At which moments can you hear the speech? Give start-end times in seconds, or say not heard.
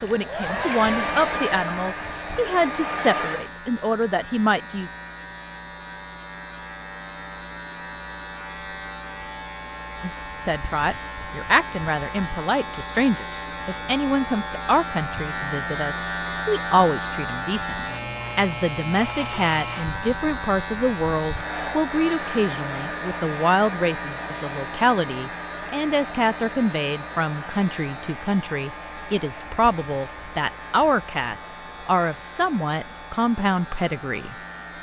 0.0-5.0, 10.0-34.7.